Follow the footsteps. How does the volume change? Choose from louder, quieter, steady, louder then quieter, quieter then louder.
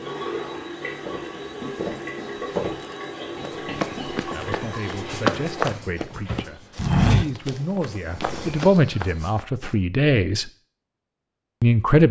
louder then quieter.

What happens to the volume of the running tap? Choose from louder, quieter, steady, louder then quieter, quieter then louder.
steady.